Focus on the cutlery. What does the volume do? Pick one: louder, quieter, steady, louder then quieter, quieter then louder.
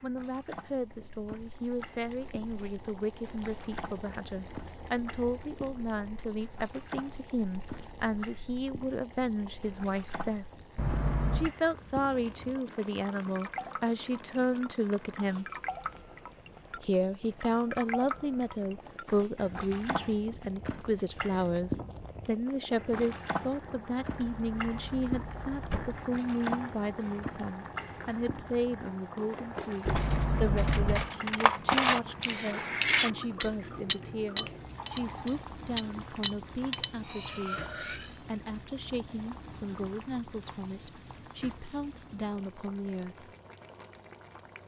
quieter.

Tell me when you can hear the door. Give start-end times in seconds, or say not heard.
10.8-11.5, 24.1-26.1, 29.9-31.1.